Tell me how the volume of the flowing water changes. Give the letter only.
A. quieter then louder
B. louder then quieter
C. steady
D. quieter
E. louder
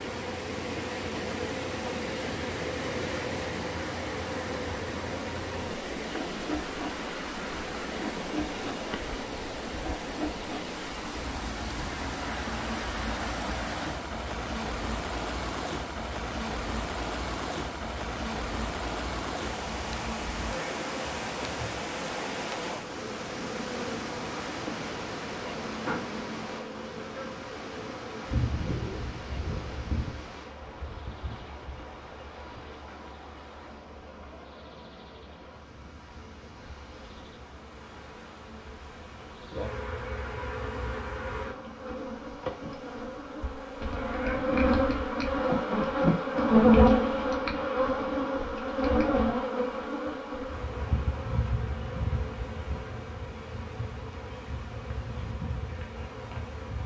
D.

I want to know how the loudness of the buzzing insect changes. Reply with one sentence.
The volume of the buzzing insect goes up.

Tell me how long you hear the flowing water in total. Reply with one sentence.
The flowing water can be heard for 57 seconds in total.